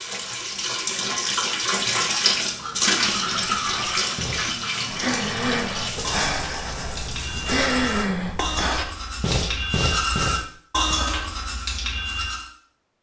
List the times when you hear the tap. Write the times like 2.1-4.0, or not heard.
0.0-7.7.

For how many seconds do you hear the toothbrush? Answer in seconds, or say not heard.
10 s.